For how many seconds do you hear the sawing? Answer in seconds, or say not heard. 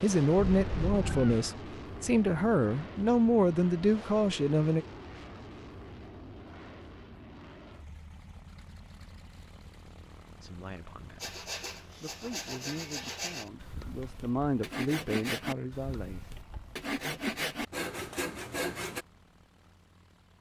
8 s.